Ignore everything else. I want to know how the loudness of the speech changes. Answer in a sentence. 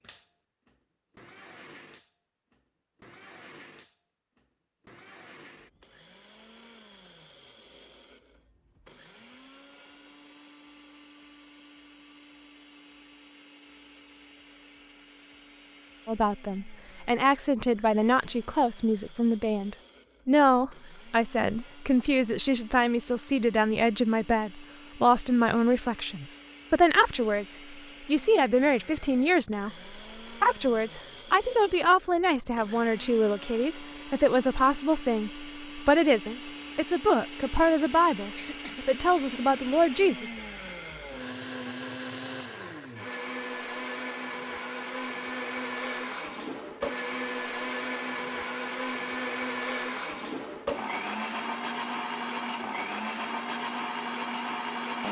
The volume of the speech stays about the same.